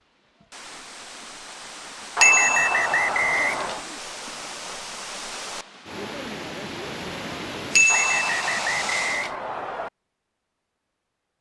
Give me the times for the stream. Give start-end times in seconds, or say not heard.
0.0-9.3.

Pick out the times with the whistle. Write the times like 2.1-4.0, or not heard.
2.1-3.9, 7.8-9.9.